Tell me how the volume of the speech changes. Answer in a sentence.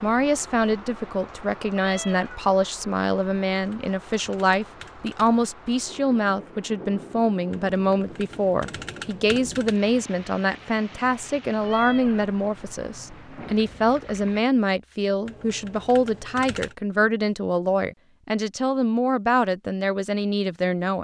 The volume of the speech stays about the same.